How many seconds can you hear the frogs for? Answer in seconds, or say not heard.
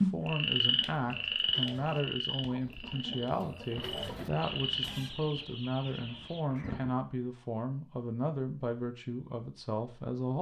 5 s.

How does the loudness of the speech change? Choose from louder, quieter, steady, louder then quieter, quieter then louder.
steady.